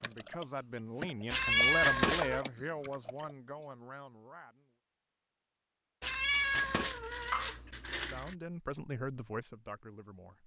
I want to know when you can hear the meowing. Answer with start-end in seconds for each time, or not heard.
1.3-2.5, 6.0-8.3.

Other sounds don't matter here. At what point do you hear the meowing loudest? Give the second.
2 s.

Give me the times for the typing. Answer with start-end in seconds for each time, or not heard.
0.0-3.5.